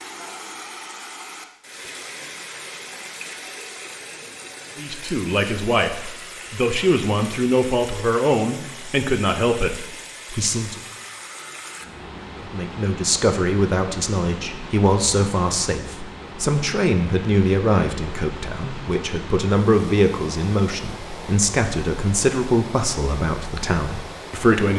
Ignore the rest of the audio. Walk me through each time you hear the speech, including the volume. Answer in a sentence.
The speech can be heard from 4.8 to 10.8 s, at a steady volume; and from 12.4 to 24.7 s, at a steady volume.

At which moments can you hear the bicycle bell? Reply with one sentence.
The bicycle bell can't be heard in this clip.